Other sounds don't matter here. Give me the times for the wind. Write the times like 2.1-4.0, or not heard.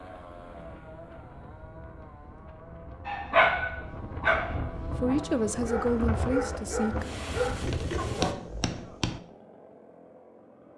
0.0-8.3.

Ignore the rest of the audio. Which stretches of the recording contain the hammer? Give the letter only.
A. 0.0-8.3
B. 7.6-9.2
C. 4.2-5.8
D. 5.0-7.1
B.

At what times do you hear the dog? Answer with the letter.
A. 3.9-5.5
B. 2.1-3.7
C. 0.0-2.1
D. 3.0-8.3
D.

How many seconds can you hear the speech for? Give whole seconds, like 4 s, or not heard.
2 s.